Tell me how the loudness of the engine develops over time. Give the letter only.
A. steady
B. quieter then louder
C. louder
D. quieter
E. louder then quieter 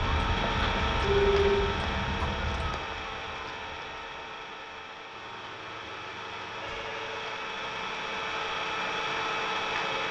B.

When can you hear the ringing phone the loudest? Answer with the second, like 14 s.
1 s.